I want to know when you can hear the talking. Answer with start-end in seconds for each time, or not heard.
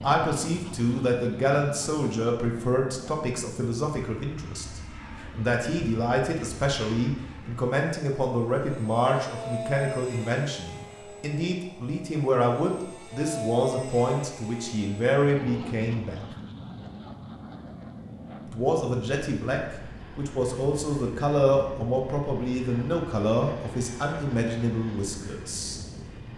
0.0-16.2, 18.4-25.8.